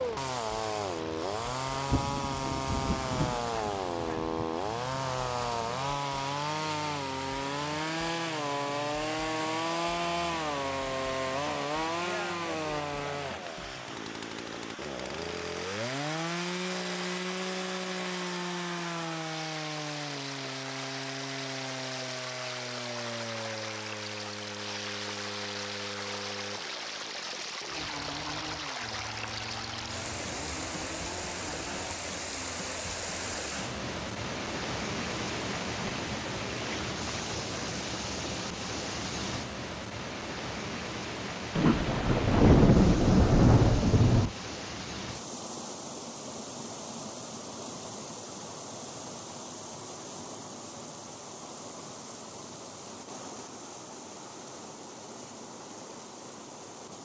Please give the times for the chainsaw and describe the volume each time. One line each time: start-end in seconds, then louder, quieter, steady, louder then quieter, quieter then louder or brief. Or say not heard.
0.0-31.9 quieter.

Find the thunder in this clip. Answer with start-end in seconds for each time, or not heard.
1.7-4.5, 41.5-44.3.